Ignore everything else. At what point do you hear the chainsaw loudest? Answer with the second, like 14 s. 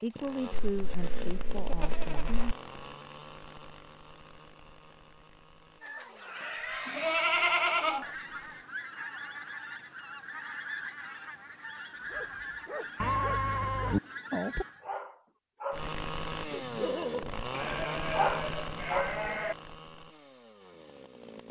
18 s.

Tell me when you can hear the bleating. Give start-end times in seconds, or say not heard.
0.5-2.5, 6.8-8.1, 13.0-14.0, 17.5-19.6.